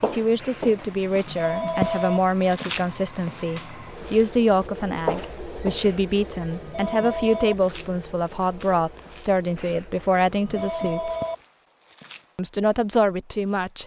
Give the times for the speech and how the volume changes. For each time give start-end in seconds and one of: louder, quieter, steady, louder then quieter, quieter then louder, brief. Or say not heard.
0.0-11.1 steady
12.3-13.8 brief.